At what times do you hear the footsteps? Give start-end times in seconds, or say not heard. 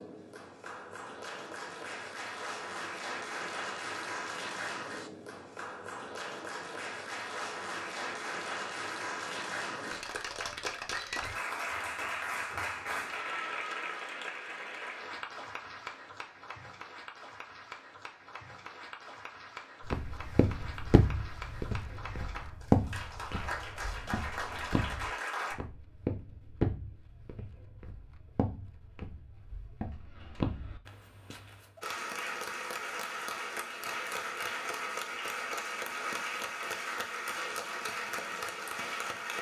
19.9-31.9.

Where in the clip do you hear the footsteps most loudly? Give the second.
23 s.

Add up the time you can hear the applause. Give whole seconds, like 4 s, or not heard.
33 s.